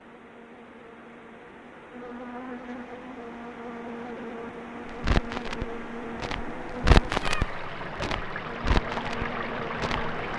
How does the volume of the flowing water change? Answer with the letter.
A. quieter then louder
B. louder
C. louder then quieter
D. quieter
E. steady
B.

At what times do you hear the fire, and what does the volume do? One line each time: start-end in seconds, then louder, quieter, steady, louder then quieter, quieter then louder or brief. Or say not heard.
4.8-10.2 louder then quieter.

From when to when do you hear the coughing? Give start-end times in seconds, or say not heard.
not heard.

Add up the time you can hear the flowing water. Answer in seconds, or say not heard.
10 s.